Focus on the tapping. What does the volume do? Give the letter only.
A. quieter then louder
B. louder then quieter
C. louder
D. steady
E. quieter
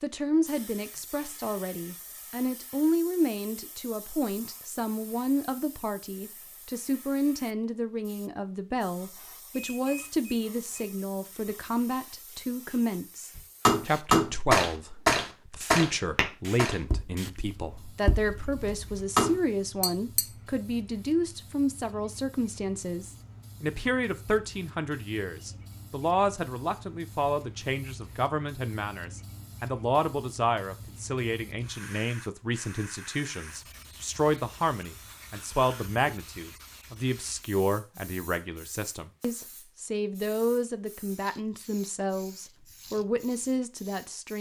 A.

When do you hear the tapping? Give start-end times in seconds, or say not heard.
13.3-20.2.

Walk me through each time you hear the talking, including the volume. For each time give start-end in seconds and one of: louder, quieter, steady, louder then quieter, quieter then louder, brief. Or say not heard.
0.0-44.3 steady.